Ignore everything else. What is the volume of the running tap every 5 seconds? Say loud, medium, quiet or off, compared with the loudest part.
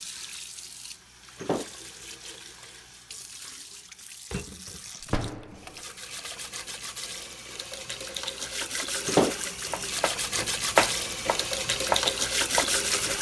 quiet, medium, loud.